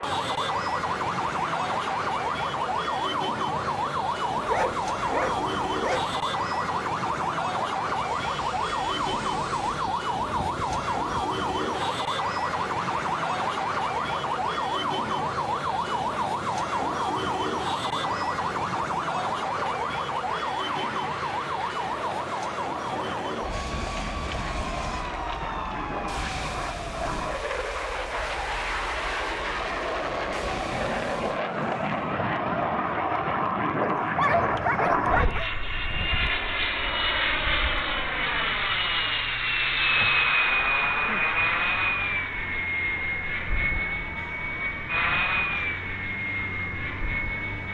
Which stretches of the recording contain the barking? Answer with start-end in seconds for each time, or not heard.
4.5-6.2, 33.8-35.5.